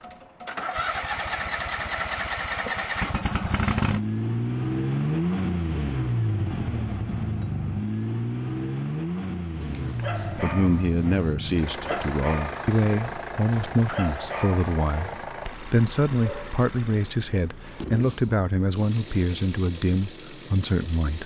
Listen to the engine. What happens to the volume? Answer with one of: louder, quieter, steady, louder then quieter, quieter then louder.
quieter.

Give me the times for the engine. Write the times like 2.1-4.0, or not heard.
0.0-21.2.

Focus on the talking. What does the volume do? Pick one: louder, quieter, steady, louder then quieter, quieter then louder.
steady.